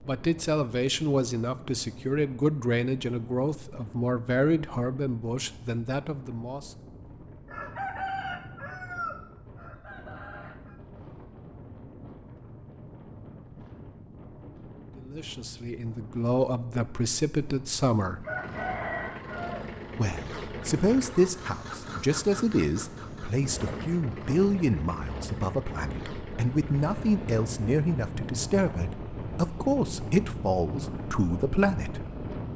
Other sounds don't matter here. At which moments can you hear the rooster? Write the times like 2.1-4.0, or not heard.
7.5-10.8, 18.2-19.7.